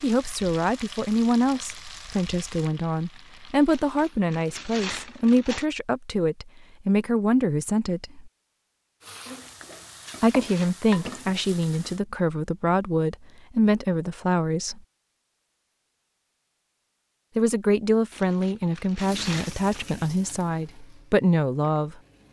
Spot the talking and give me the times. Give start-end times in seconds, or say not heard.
0.0-8.3, 10.2-14.8, 17.4-21.9.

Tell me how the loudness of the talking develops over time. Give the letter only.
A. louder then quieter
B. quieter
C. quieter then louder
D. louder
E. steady
E.